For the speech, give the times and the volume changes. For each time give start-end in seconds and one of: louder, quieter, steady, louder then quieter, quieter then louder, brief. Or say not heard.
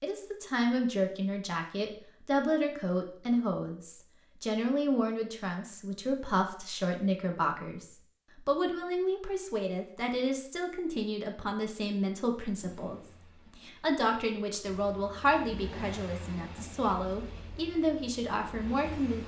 0.0-19.2 steady.